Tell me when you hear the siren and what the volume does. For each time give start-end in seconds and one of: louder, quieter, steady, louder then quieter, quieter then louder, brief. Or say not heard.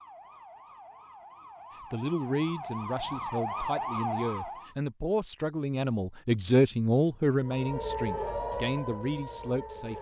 0.0-4.8 louder
7.4-9.9 brief.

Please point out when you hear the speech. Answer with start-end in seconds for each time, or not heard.
1.8-9.9.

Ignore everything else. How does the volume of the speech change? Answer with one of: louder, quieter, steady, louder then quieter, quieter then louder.
louder then quieter.